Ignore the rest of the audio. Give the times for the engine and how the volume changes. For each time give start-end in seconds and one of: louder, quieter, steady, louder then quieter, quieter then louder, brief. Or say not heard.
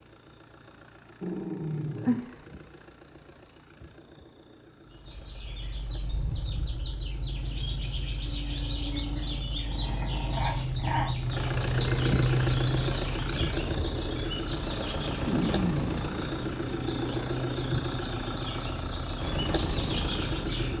0.0-20.7 louder.